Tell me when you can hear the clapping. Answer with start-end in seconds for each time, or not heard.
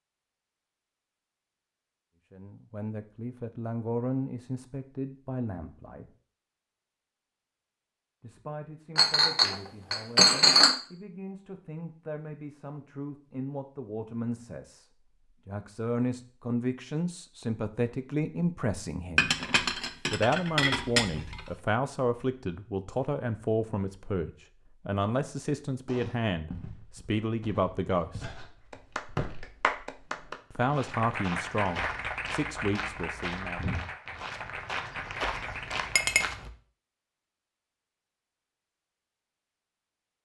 28.7-36.2.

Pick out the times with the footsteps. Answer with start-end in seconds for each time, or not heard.
25.9-36.5.